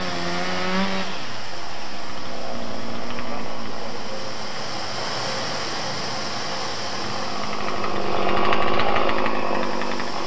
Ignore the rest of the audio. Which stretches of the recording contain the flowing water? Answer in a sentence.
You can hear the flowing water from 0.0 to 10.2 s.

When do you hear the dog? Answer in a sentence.
The dog can't be heard in this clip.